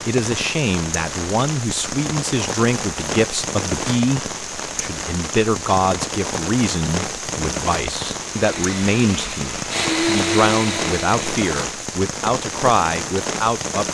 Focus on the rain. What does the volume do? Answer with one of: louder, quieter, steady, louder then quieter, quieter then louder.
steady.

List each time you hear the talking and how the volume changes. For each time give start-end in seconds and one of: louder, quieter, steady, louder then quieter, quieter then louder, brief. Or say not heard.
0.1-13.8 steady.